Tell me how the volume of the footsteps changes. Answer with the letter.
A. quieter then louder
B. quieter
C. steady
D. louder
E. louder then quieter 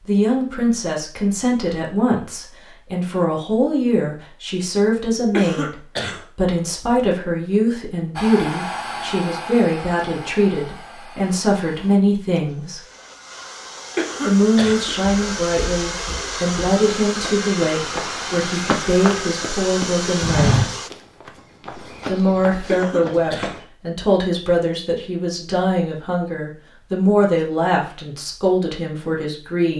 E.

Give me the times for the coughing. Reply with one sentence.
The coughing can be heard from 5.3 to 6.2 s, from 13.9 to 14.8 s and from 22.6 to 23.6 s.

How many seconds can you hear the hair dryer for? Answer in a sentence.
The hair dryer can be heard for 13 seconds in total.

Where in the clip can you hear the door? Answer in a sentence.
You can't hear the door here.